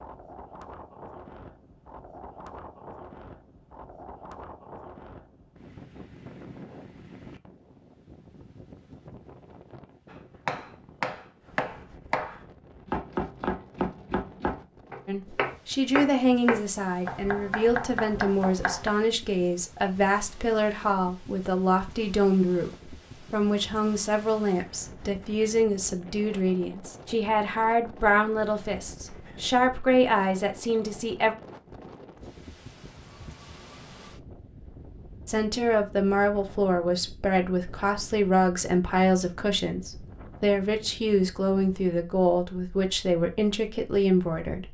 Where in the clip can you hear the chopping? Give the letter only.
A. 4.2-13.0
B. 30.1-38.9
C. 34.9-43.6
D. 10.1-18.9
D.